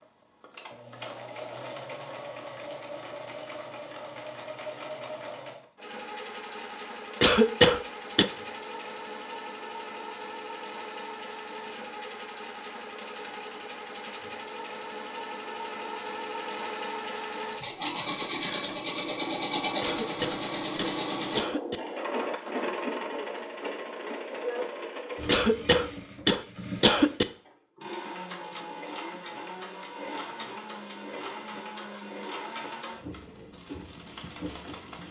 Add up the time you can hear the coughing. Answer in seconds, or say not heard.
5 s.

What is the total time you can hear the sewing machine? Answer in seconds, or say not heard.
35 s.